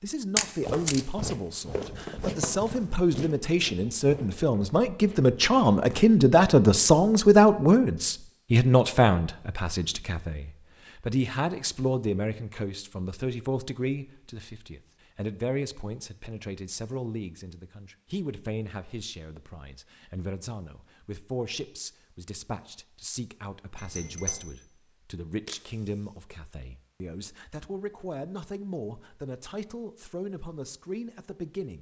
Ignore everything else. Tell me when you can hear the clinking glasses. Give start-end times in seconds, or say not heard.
23.8-24.4.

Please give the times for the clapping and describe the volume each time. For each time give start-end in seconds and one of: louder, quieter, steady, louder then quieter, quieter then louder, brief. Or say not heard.
not heard.